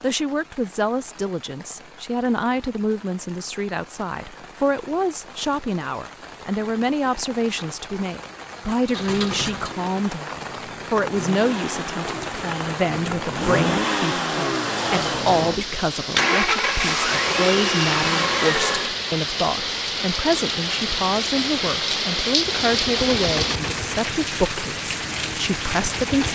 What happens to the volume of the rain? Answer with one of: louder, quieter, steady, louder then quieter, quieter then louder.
louder.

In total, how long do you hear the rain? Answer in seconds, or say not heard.
26 s.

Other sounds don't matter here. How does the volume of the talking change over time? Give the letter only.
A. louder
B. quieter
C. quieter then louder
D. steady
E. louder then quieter
D.